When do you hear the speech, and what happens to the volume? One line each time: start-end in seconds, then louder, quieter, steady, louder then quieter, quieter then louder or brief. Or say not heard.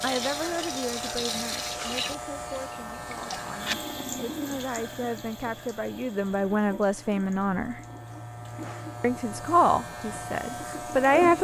0.0-7.8 quieter then louder
9.0-11.3 brief.